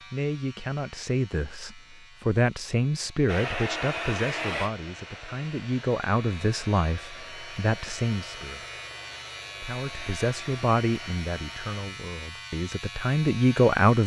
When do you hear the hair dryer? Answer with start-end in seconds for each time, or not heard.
3.2-11.8.